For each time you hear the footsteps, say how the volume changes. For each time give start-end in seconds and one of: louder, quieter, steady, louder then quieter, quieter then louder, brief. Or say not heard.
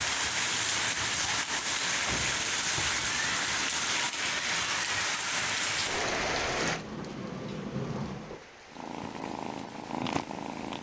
not heard.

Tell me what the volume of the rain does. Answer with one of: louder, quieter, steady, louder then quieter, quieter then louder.
quieter.